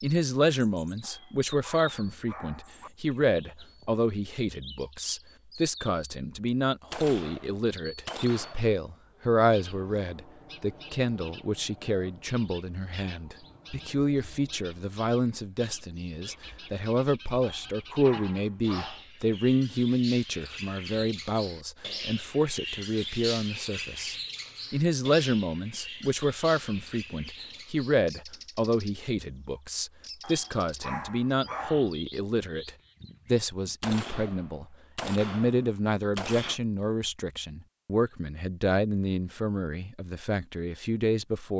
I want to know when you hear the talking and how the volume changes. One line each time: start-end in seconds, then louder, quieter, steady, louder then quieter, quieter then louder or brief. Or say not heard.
0.0-41.5 steady.